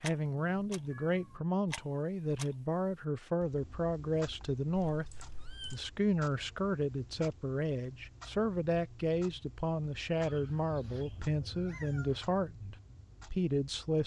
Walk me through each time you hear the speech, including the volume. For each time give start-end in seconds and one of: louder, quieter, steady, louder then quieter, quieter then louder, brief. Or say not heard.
0.0-14.0 steady.